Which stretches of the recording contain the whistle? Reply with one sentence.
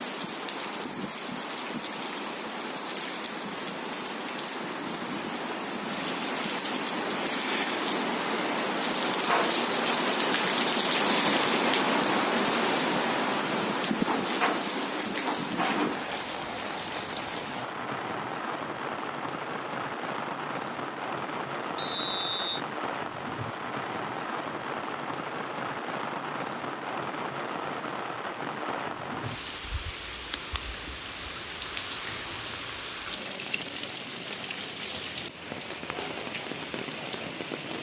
You can hear the whistle from 21.8 to 22.6 s.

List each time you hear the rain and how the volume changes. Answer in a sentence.
The rain can be heard from 0.0 to 37.7 s, getting louder then quieter.